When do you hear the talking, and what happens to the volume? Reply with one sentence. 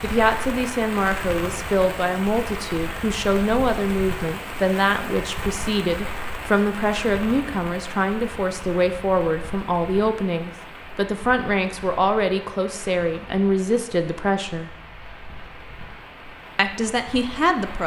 The talking can be heard from 0.0 to 14.8 s, at a steady volume; and briefly from 16.6 to 17.8 s.